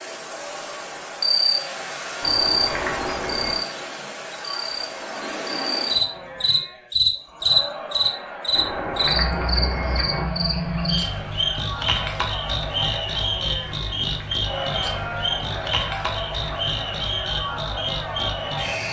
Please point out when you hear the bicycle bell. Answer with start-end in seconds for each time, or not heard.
2.2-3.6, 8.5-10.3, 13.7-15.7.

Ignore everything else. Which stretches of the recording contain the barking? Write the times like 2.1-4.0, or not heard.
not heard.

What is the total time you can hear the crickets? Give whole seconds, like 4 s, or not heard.
19 s.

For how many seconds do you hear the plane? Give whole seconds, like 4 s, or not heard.
not heard.